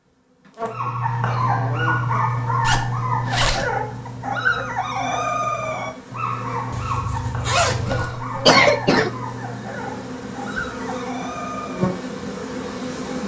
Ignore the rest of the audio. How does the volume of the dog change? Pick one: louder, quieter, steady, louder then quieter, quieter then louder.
quieter.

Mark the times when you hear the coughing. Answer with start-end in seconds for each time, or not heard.
7.8-9.1.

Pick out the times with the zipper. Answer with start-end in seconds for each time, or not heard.
2.6-3.7, 6.7-8.1.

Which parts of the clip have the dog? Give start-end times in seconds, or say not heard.
0.7-12.1.